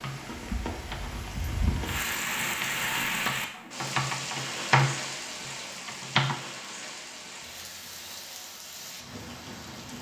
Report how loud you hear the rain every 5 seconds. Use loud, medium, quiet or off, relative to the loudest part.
loud, medium.